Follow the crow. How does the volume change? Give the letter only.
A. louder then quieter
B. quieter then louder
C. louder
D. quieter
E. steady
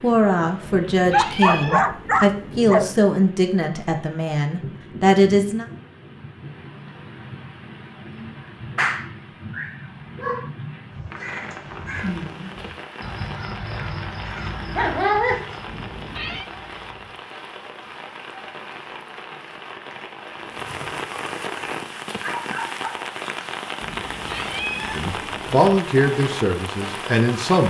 D.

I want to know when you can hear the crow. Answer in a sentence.
The crow can be heard from 10.9 to 17.2 s.